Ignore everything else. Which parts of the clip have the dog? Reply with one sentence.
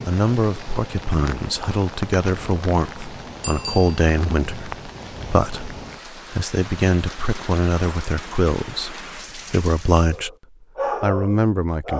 You can hear the dog from 10.1 to 11.9 s.